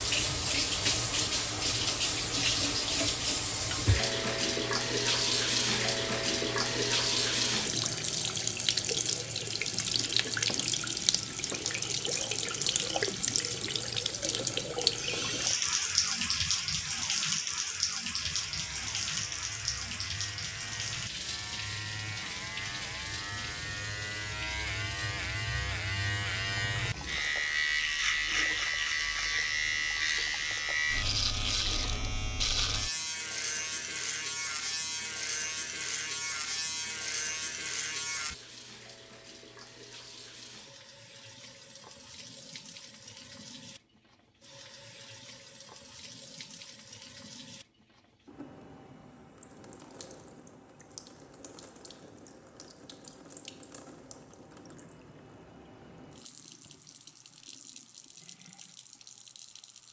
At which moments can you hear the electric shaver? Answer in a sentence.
You can hear the electric shaver from 18.2 to 38.4 s.